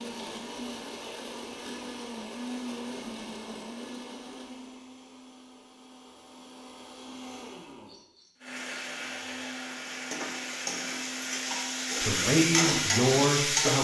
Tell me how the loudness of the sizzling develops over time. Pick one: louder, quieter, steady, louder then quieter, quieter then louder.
louder.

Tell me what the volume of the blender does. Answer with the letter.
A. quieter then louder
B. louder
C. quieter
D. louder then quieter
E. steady
A.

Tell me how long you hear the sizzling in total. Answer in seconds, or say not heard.
5 s.